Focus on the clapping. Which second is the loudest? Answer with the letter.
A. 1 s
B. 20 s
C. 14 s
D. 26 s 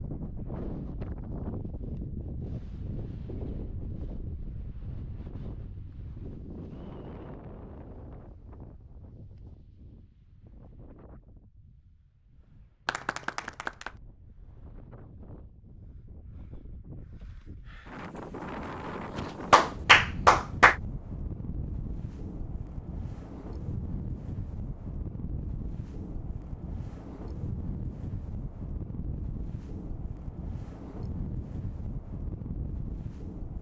B.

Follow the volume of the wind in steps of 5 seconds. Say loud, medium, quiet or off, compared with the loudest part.
loud, medium, quiet, loud, loud, loud, loud.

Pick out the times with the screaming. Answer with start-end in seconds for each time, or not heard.
not heard.